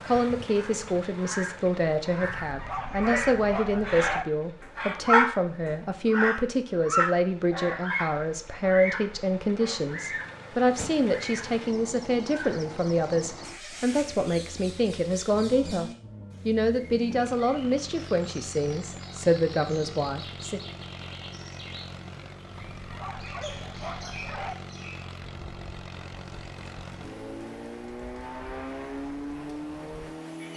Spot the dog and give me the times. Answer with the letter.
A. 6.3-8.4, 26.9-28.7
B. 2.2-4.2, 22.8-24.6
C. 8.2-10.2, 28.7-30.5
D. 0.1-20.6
B.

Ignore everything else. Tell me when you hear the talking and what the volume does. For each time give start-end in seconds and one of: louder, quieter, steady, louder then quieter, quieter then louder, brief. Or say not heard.
0.1-20.6 steady.